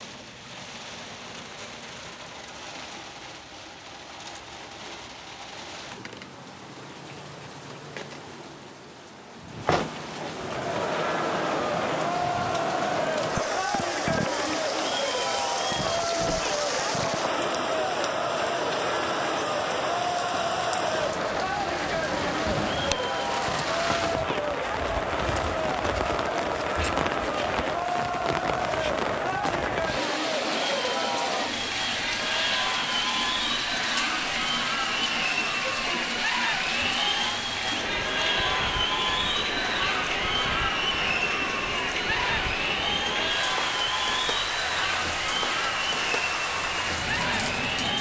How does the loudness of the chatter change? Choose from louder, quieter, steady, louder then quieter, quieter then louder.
steady.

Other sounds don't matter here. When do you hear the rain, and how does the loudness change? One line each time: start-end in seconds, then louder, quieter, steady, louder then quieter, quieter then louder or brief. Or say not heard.
0.0-47.9 louder.